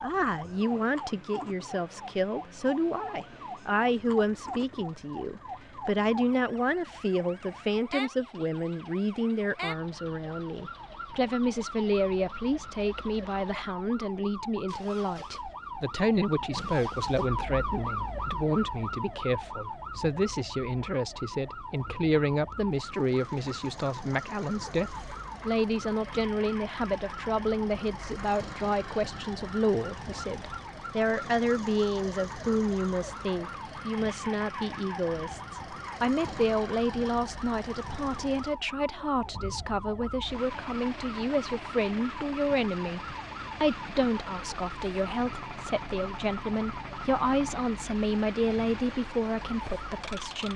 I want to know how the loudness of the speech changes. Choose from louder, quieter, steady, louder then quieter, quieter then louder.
steady.